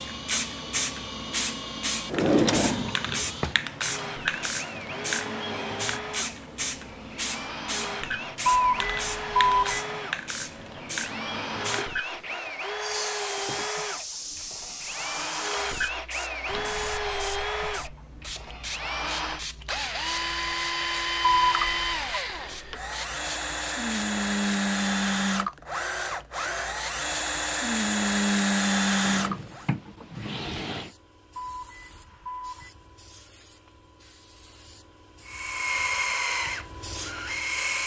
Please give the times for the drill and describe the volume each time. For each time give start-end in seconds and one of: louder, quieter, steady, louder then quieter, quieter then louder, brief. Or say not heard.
0.0-29.6 louder
35.2-37.8 brief.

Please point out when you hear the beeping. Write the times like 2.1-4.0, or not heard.
8.4-9.8, 21.2-22.2, 31.4-32.7.